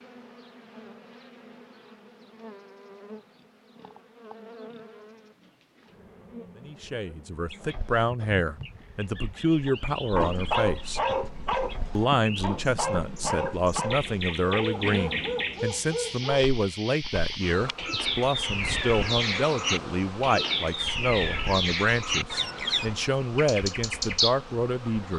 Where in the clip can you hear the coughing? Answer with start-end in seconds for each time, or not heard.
not heard.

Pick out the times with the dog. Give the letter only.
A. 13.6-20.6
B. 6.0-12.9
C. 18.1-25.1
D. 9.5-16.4
D.